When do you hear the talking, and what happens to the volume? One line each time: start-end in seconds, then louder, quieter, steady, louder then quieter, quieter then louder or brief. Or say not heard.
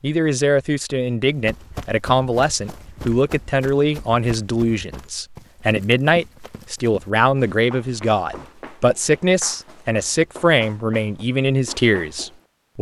0.0-12.7 steady.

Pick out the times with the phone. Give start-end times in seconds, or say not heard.
not heard.